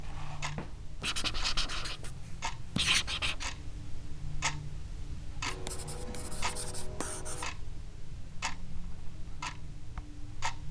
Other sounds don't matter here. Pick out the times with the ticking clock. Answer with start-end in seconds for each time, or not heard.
0.0-10.6.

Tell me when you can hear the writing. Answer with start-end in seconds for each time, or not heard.
1.0-3.5, 5.5-7.5.